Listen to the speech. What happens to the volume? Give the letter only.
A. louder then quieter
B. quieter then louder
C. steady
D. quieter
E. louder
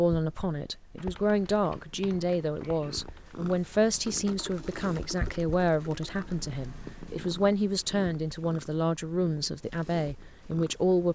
C.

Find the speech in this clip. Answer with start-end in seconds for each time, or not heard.
0.0-11.1.